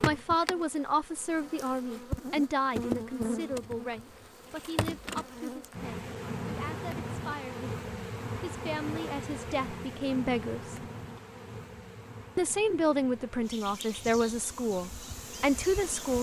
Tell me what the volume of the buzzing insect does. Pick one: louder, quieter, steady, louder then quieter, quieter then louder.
quieter.